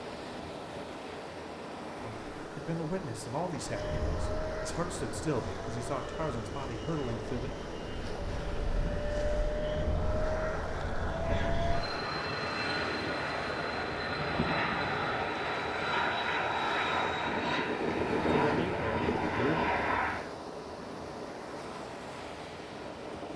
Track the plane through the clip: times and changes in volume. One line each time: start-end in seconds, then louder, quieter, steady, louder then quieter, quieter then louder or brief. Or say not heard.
3.6-20.3 louder.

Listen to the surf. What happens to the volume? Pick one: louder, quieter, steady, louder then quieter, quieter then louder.
steady.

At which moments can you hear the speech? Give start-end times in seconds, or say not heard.
2.0-7.5, 18.1-19.6.